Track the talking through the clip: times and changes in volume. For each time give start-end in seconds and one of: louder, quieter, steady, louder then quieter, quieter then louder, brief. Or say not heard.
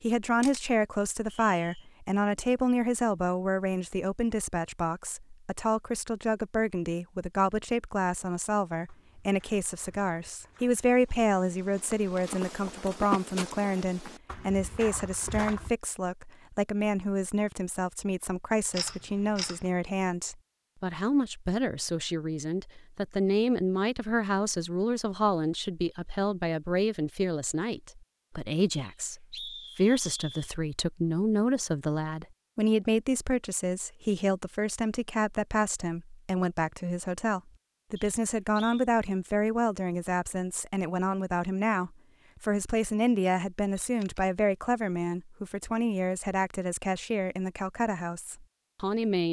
0.0-49.2 steady.